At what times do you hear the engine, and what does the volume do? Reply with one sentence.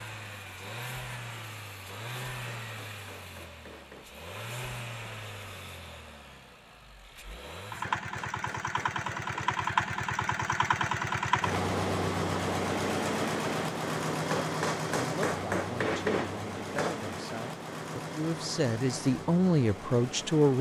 You can hear the engine from 0.0 to 20.5 s, getting louder then quieter.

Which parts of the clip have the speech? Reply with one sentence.
The speech can be heard from 14.9 to 20.5 s.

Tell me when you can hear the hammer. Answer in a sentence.
The hammer can be heard from 2.2 to 4.1 s, from 7.8 to 9.7 s and from 14.3 to 17.0 s.